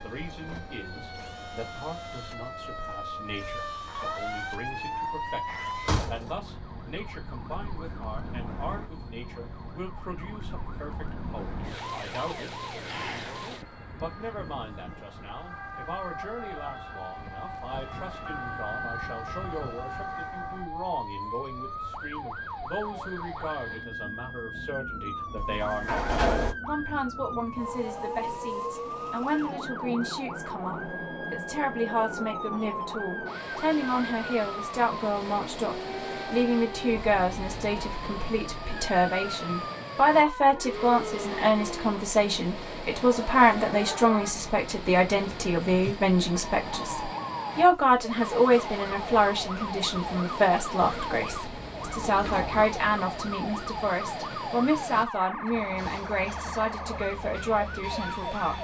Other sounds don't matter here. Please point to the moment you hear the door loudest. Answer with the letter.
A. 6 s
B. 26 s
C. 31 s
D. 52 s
B.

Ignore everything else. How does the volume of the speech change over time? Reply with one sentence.
The loudness of the speech goes up.